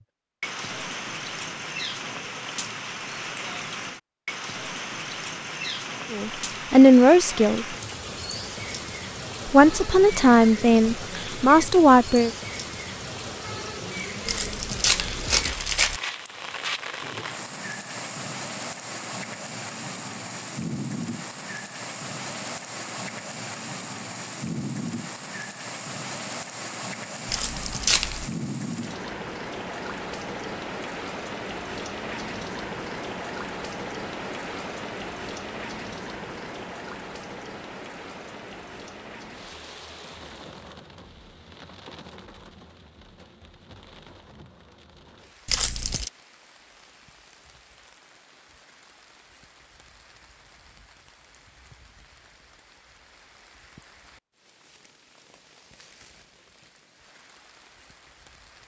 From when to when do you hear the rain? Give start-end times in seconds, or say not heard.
0.0-58.6.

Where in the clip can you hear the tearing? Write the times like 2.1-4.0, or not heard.
14.2-16.0, 27.2-28.2, 45.5-46.1.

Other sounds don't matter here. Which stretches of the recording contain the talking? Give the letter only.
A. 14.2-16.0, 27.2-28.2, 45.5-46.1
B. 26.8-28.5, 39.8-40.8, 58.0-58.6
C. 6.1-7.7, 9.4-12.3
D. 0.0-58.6
C.